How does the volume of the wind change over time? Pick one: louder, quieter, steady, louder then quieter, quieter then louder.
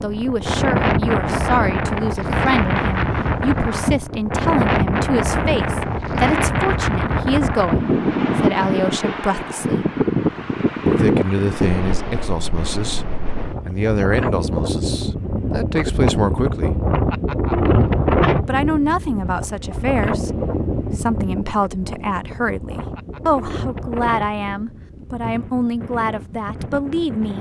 quieter.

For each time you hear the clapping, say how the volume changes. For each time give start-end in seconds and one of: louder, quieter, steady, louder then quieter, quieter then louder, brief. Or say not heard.
not heard.